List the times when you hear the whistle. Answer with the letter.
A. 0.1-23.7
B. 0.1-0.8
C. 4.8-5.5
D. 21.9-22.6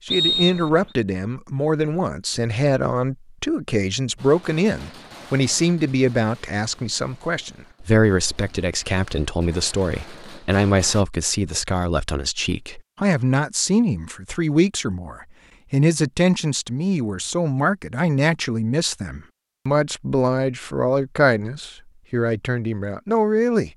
B.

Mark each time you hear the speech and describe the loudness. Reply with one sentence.
The speech can be heard from 0.1 to 23.7 s, at a steady volume.